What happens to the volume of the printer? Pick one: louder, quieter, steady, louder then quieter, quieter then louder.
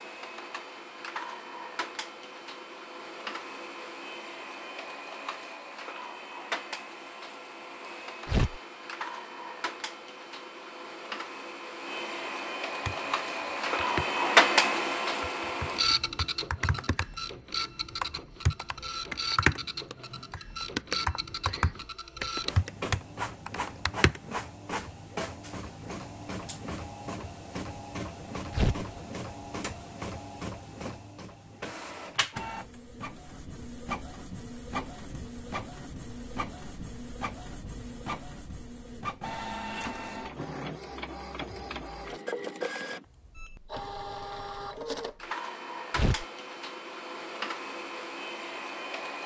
louder then quieter.